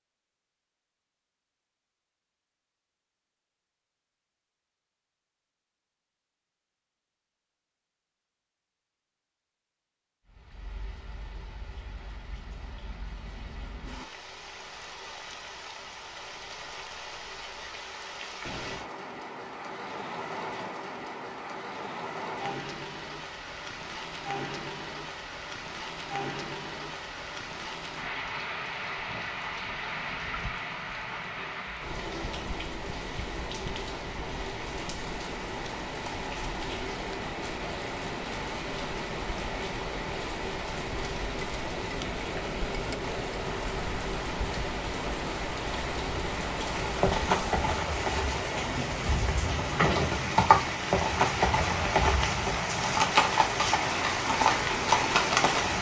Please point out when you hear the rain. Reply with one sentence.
You can hear the rain from 10.2 to 55.7 s.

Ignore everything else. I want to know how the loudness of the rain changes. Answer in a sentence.
The volume of the rain goes up.